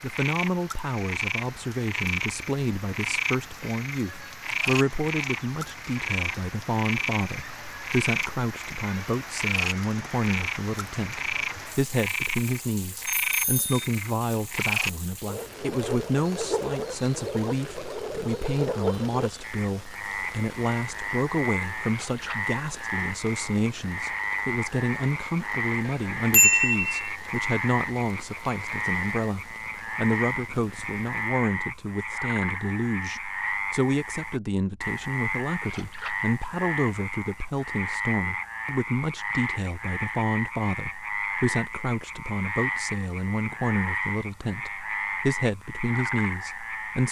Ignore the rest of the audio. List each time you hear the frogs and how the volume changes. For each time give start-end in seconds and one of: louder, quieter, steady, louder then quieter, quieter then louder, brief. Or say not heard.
0.0-47.0 steady.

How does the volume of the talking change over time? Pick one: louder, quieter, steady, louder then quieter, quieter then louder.
steady.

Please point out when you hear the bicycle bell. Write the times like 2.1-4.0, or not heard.
13.1-13.9, 25.9-27.1.